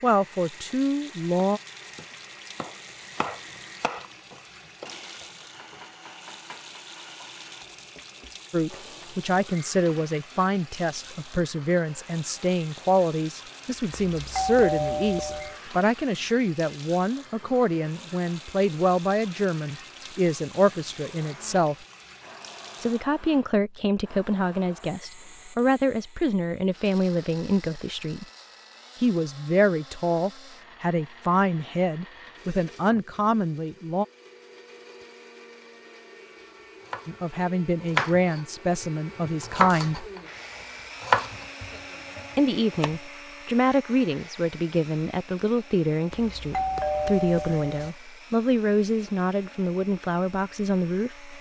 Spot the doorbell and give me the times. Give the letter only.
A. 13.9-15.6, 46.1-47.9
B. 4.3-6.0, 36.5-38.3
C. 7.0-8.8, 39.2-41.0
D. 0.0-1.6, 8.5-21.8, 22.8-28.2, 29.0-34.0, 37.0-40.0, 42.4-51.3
A.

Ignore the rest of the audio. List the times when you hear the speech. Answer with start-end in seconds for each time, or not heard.
0.0-1.6, 8.5-21.8, 22.8-28.2, 29.0-34.0, 37.0-40.0, 42.4-51.3.